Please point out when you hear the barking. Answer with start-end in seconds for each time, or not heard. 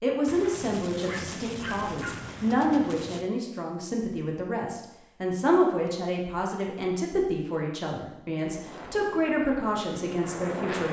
1.1-2.2.